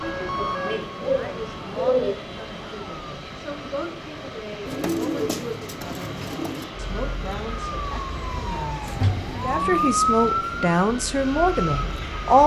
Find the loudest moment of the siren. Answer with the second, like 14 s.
10 s.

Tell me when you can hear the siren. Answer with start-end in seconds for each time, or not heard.
0.0-3.1, 6.7-12.4.